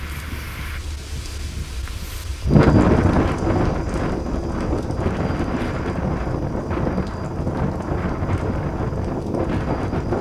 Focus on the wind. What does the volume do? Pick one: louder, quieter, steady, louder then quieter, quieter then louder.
louder then quieter.